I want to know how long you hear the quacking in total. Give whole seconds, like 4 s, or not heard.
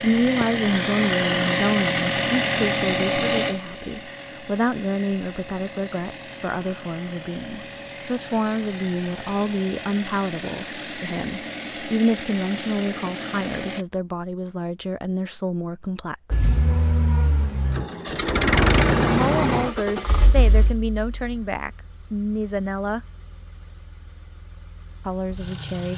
not heard.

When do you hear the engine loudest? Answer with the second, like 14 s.
19 s.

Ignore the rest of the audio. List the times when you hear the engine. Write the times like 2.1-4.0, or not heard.
0.0-13.8, 16.3-25.9.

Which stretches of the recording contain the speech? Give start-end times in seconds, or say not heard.
0.0-16.4, 19.1-23.0, 25.1-25.9.